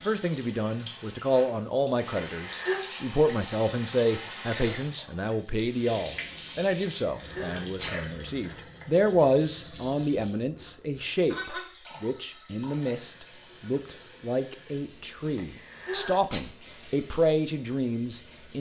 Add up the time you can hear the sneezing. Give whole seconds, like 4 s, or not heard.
3 s.